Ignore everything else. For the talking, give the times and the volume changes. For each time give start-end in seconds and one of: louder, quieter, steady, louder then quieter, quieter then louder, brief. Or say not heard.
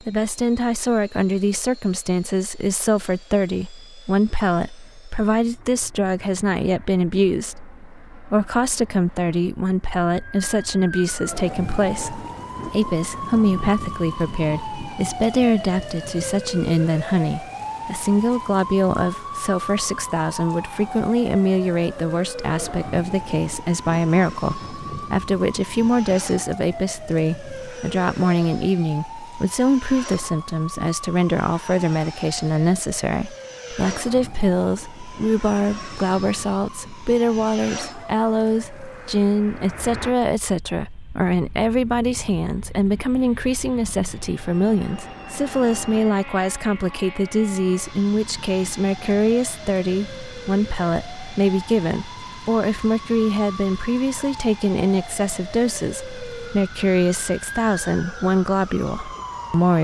0.1-59.7 steady.